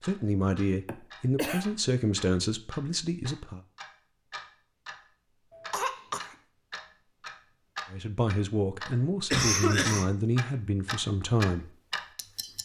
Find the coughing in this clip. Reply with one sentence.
You can hear the coughing from 0.8 to 1.6 s, from 5.7 to 6.2 s and from 9.3 to 10.1 s.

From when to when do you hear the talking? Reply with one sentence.
The talking can be heard from 0.0 to 3.6 s and from 7.9 to 11.7 s.